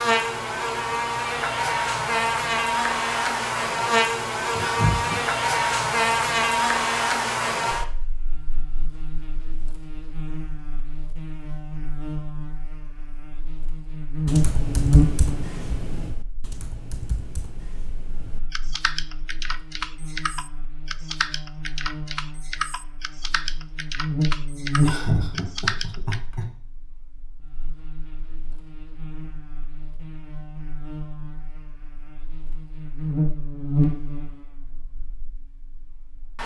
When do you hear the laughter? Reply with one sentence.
You can hear the laughter from 4.5 to 5.2 s and from 24.8 to 26.4 s.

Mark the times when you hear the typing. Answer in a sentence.
The typing can be heard from 14.2 to 26.2 s.